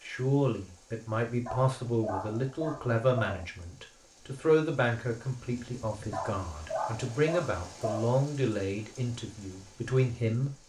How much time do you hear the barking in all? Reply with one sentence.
You can hear the barking for 4 seconds altogether.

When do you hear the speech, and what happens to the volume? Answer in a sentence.
The speech can be heard from 0.0 to 10.5 s, at a steady volume.